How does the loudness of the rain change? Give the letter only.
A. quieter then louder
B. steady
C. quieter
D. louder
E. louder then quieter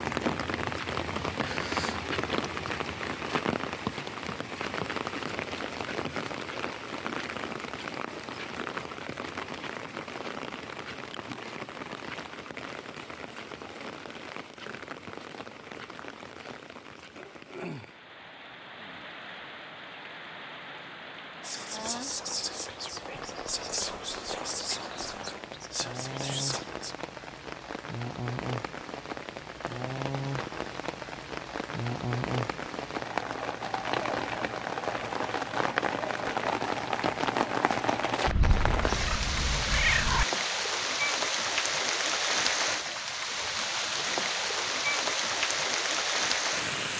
A.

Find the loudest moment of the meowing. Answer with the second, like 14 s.
40 s.